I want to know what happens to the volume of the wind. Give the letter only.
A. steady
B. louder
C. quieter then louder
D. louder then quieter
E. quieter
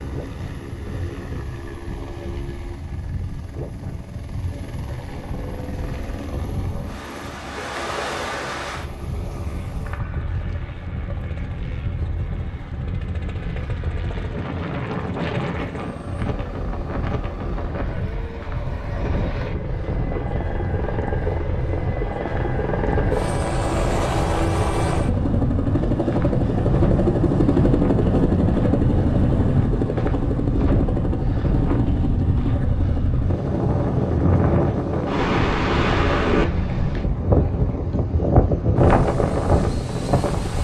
B.